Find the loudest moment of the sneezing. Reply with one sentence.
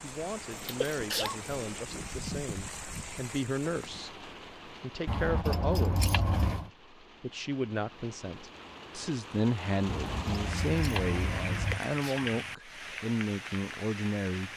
The loudest moment of the sneezing is at 1 second.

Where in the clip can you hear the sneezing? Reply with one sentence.
The sneezing can be heard from 0.8 to 1.4 s and from 11.8 to 12.3 s.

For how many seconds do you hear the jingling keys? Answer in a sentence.
The jingling keys can be heard for 5 seconds in total.